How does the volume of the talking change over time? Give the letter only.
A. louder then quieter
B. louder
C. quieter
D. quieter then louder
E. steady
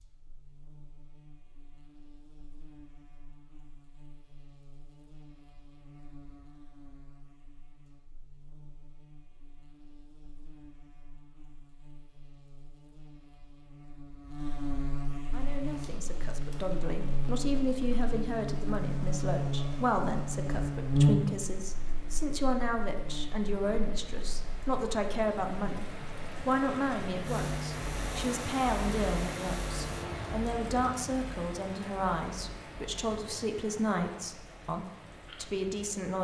E.